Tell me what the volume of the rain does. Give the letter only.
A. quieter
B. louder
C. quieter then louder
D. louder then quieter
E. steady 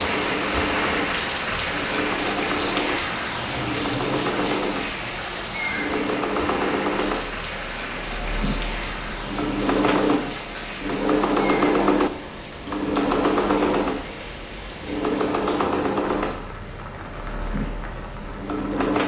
A.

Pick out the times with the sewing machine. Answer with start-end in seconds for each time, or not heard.
0.0-19.0.